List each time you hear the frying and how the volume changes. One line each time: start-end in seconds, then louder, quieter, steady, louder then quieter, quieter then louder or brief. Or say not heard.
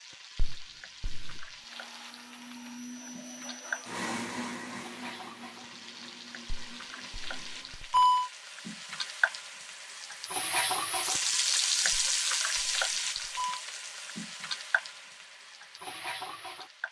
0.0-16.8 louder then quieter.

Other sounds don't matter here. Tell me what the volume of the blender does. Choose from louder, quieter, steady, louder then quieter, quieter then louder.
louder then quieter.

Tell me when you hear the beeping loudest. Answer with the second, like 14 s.
8 s.